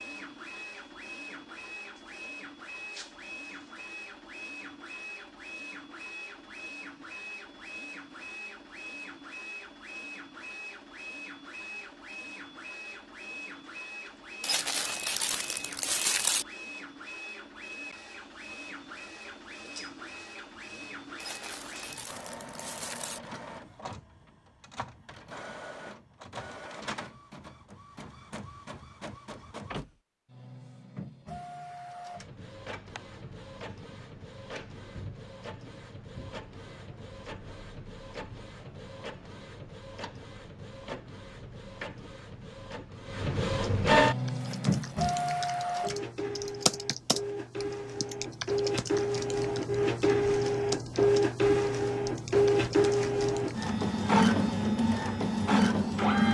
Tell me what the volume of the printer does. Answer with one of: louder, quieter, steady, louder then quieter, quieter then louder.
louder.